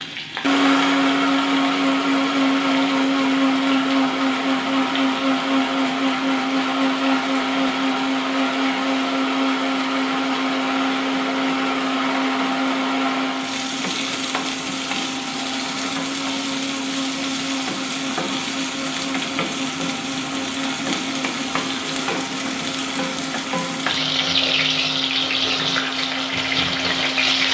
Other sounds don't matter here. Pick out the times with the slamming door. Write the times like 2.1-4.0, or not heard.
not heard.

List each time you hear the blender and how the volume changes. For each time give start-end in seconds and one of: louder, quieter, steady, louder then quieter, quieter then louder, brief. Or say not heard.
0.0-27.4 quieter.